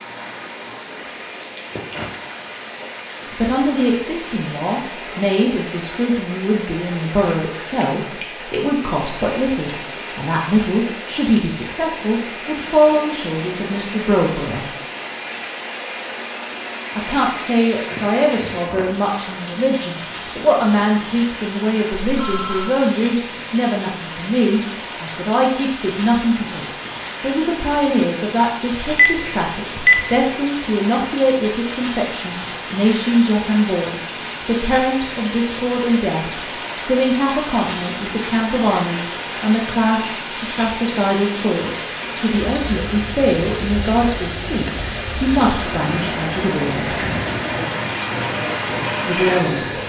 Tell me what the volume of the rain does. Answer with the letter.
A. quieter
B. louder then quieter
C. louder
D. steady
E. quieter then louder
C.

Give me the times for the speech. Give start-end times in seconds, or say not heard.
3.3-14.7, 16.9-47.0, 49.0-49.8.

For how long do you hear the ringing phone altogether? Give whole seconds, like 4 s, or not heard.
2 s.